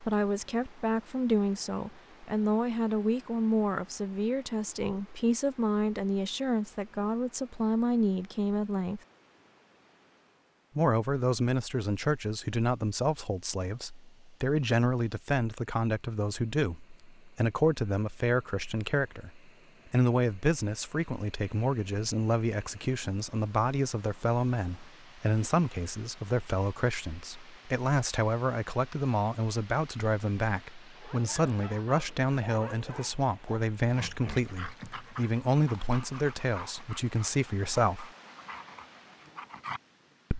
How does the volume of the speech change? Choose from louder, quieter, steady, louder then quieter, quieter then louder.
steady.